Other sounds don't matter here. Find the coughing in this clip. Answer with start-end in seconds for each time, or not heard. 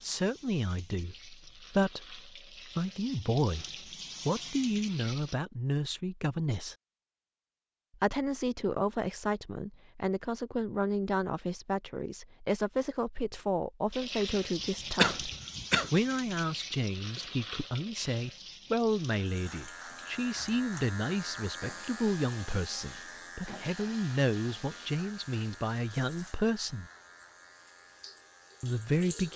14.9-15.9.